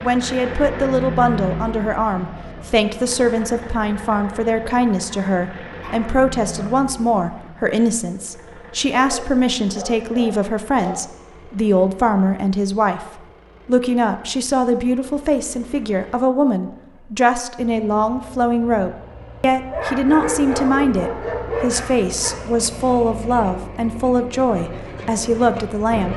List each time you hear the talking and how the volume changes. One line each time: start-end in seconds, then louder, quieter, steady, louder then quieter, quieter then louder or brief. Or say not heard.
0.0-26.1 steady.